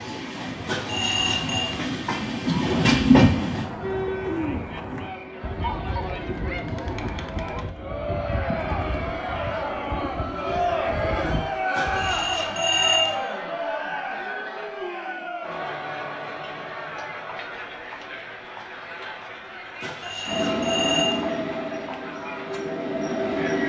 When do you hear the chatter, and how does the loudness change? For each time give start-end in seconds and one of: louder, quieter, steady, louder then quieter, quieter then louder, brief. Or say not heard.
0.0-23.6 louder then quieter.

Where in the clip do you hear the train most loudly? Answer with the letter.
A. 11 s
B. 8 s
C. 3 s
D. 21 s
C.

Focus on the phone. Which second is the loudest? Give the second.
13 s.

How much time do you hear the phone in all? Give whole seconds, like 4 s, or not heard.
4 s.